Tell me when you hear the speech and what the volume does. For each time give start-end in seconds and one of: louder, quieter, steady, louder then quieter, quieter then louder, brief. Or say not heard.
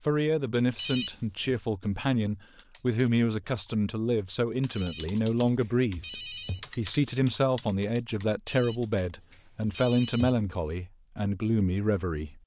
0.1-12.4 steady.